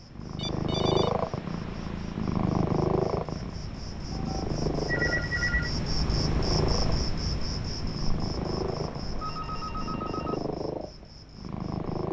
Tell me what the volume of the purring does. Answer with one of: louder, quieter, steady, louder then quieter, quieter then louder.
quieter.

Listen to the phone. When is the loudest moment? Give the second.
5 s.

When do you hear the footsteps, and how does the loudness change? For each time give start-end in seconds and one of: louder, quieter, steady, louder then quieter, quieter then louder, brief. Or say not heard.
not heard.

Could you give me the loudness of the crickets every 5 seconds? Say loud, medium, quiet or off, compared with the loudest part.
medium, loud, quiet.